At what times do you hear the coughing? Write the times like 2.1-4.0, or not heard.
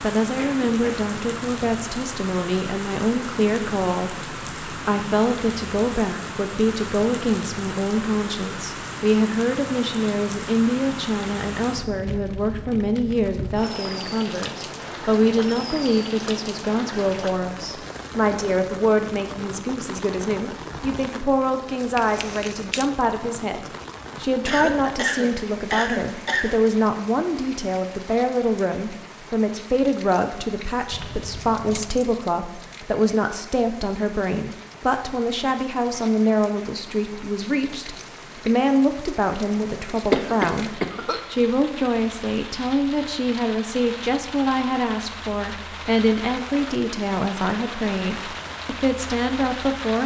0.3-0.9, 24.4-26.6, 40.1-41.2.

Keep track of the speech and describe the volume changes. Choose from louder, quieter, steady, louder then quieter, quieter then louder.
steady.